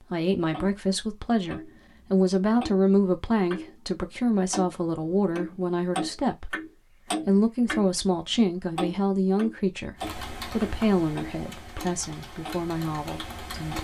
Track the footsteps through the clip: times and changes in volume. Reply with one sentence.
The footsteps can't be heard in this clip.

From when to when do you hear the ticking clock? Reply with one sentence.
The ticking clock can be heard from 0.4 to 3.8 s, from 4.5 to 8.0 s and from 8.8 to 13.7 s.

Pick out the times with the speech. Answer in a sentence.
You can hear the speech from 0.0 to 13.7 s.